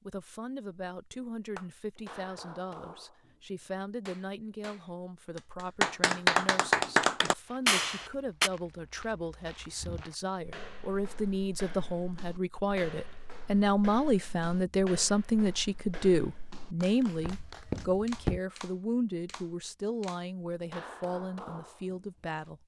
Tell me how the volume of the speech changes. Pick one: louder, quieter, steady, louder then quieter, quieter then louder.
louder then quieter.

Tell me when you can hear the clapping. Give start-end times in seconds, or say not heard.
1.6-8.5, 16.8-22.5.